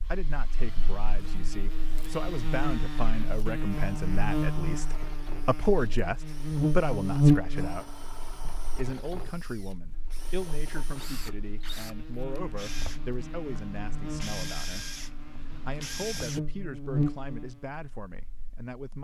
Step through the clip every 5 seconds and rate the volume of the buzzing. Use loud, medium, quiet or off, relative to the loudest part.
medium, loud, quiet, medium.